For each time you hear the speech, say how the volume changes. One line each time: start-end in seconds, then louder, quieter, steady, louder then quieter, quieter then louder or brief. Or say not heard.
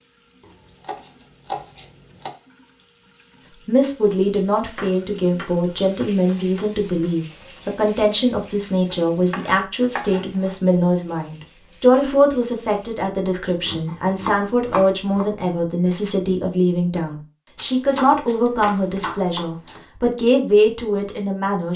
3.6-21.7 steady.